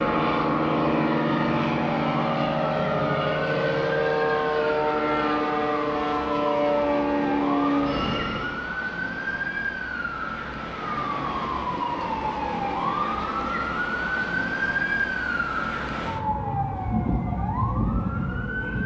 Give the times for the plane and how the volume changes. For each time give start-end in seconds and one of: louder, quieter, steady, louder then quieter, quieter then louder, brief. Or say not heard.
0.0-8.7 steady.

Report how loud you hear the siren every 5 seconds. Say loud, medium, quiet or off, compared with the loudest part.
medium, loud, loud, loud.